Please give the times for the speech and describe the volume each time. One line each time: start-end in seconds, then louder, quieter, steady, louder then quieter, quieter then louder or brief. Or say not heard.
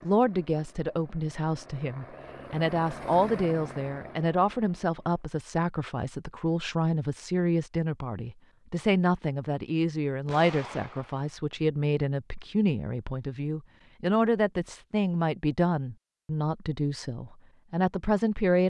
0.0-18.6 steady.